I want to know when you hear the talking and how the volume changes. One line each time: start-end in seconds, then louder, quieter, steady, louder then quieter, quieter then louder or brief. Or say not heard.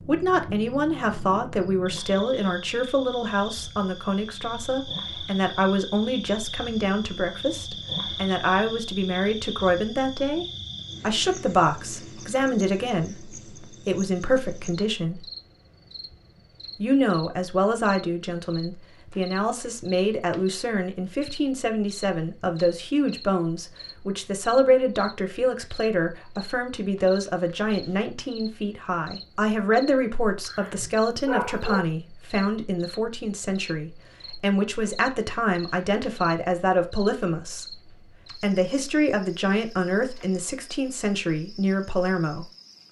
0.0-15.2 steady
16.8-42.5 steady.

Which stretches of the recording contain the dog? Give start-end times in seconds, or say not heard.
30.4-31.8.